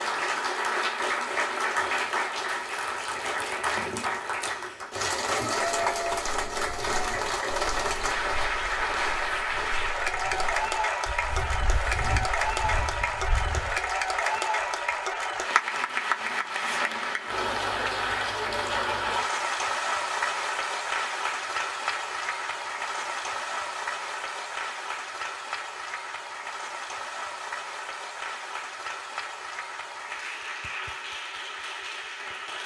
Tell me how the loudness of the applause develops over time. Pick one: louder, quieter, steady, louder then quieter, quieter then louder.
quieter.